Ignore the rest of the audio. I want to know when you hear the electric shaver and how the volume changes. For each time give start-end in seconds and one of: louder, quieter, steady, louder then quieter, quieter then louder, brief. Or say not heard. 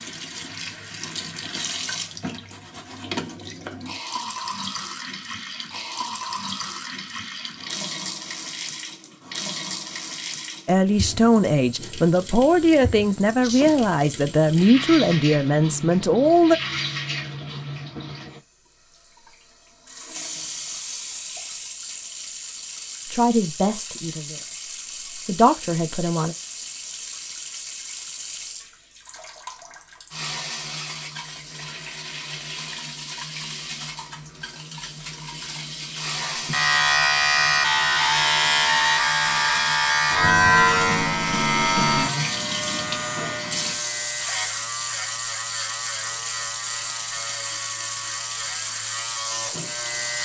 36.2-50.2 quieter.